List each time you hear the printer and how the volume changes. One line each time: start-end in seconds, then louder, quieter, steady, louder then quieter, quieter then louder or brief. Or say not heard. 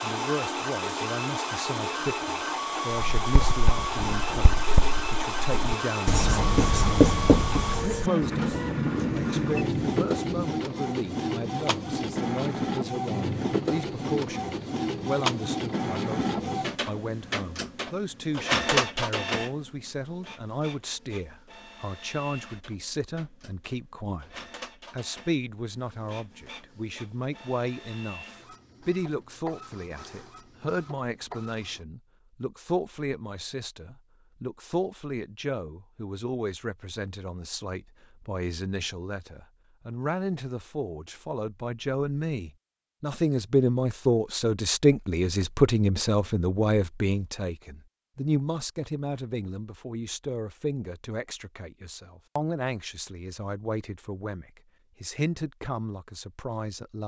0.0-31.9 quieter.